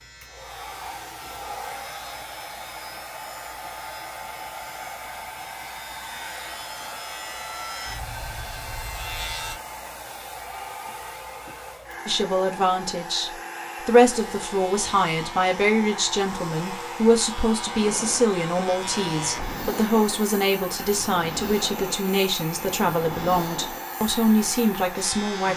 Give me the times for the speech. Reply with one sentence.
The speech can be heard from 12.1 to 25.5 s.